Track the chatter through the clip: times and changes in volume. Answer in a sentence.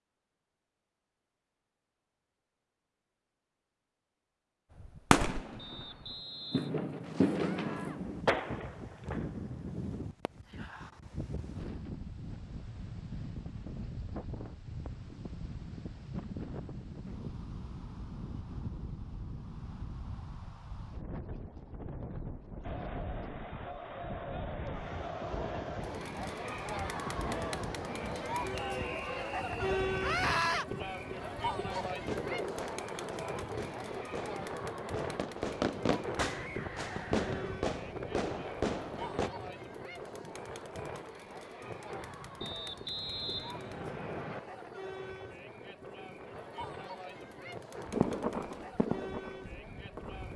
You can hear the chatter from 22.6 to 50.3 s, getting quieter.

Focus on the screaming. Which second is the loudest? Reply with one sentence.
The loudest moment of the screaming is at 30 seconds.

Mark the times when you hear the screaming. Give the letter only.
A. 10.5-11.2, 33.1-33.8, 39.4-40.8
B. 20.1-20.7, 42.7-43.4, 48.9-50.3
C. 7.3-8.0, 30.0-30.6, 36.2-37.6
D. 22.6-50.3
C.